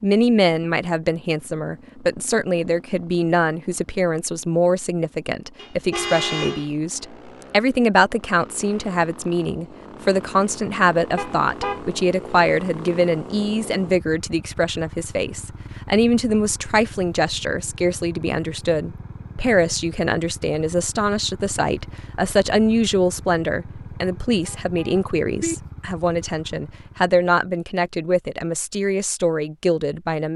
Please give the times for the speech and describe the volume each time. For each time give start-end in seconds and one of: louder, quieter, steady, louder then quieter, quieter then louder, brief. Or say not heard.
0.0-30.3 steady.